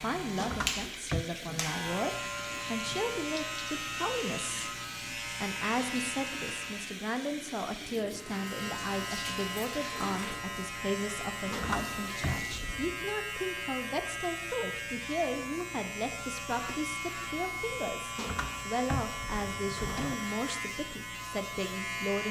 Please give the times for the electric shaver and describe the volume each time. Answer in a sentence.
You can hear the electric shaver from 0.0 to 7.0 s, at a steady volume; and from 8.1 to 22.2 s, at a steady volume.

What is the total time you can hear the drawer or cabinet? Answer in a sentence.
You can hear the drawer or cabinet for 4 seconds altogether.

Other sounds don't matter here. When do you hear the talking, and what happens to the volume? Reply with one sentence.
The talking can be heard from 0.0 to 22.2 s, at a steady volume.